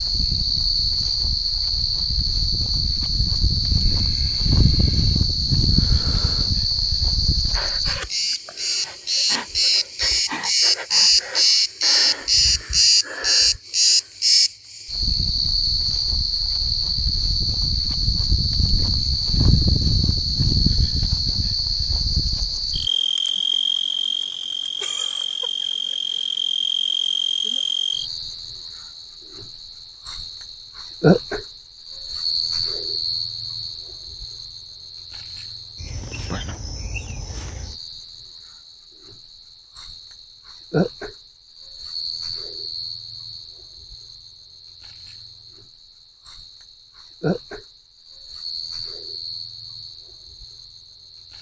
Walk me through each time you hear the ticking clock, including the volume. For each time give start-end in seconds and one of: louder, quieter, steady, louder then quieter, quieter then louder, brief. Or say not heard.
not heard.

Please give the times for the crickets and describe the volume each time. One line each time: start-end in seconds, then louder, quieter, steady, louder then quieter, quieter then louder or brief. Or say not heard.
0.0-51.3 quieter.